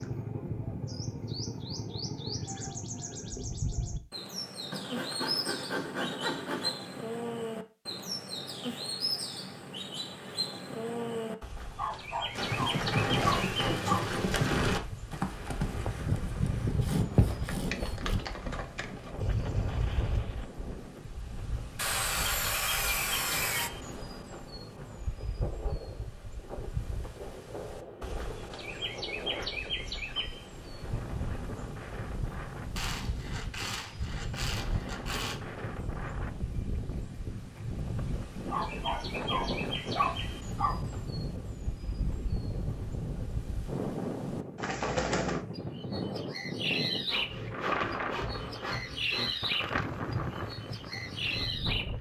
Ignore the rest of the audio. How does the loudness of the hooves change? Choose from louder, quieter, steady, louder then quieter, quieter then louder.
quieter.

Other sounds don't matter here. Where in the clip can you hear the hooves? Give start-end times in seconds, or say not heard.
12.3-20.2.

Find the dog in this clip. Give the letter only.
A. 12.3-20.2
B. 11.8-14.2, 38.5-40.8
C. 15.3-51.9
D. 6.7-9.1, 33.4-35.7
B.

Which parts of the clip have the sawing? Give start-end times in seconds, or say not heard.
4.7-6.8, 16.8-18.3, 21.8-23.7, 32.8-35.4, 47.0-49.4.